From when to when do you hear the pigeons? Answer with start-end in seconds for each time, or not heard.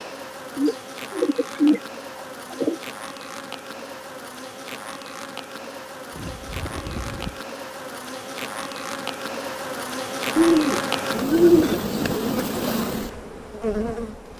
0.6-2.8, 6.1-7.4, 10.3-12.3.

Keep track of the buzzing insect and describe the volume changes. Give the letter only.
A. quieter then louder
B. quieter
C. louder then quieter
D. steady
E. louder
E.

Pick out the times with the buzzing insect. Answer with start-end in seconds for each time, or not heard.
0.0-14.3.